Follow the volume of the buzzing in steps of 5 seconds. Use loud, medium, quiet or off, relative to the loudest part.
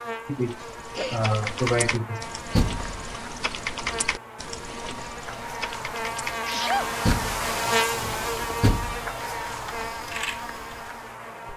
medium, loud, medium.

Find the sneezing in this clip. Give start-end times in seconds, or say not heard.
0.2-2.2, 6.5-7.0.